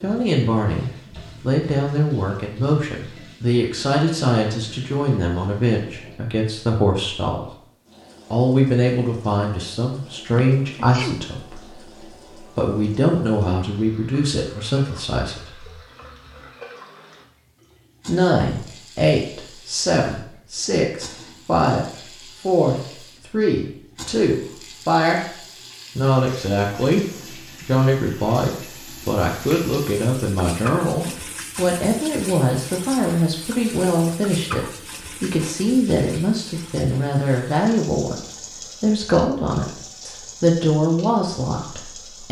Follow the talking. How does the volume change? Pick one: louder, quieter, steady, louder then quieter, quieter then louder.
steady.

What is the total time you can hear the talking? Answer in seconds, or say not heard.
39 s.